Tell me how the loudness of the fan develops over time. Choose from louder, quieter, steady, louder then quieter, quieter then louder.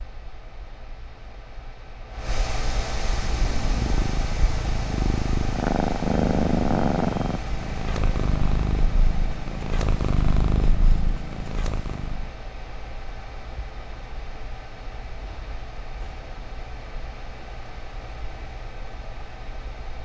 quieter.